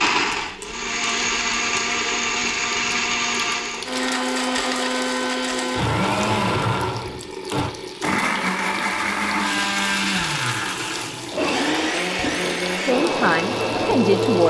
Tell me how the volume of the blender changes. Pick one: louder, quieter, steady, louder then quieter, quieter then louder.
steady.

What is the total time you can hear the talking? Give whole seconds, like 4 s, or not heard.
2 s.